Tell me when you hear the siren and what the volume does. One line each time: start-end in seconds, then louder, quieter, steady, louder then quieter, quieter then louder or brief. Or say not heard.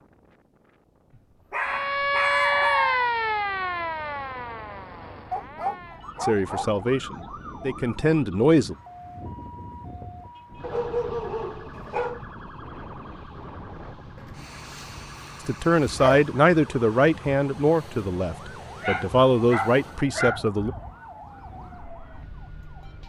1.6-23.0 quieter.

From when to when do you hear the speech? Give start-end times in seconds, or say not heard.
6.2-8.8, 15.4-20.7.